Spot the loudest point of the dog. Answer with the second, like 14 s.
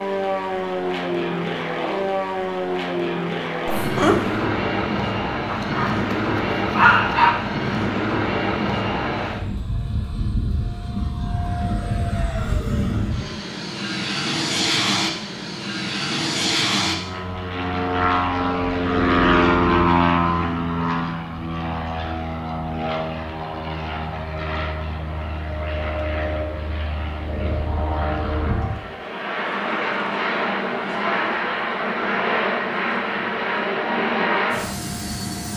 7 s.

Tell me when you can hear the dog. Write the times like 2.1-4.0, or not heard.
5.5-7.3.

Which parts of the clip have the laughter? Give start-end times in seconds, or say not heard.
3.6-4.4.